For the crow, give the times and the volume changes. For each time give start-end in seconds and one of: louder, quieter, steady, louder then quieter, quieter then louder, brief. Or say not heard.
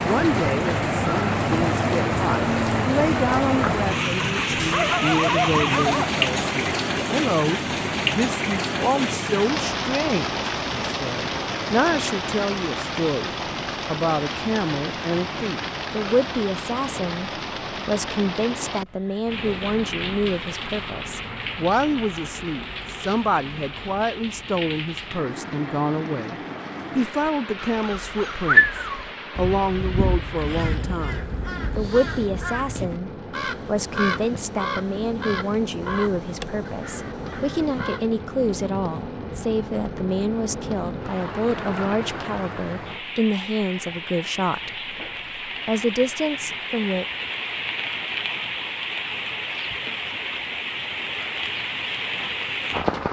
27.2-38.0 quieter.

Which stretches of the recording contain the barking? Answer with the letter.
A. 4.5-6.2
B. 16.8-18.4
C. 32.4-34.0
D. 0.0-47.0
A.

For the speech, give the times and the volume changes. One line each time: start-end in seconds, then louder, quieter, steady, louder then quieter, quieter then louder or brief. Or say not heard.
0.0-47.0 steady.